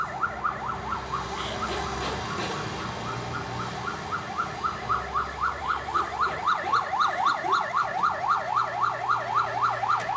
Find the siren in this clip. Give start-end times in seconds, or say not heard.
0.0-10.1.